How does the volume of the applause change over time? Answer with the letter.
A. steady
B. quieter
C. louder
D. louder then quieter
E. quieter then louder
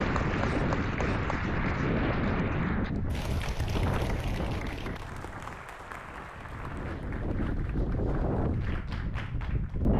B.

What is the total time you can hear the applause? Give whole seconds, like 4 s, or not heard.
10 s.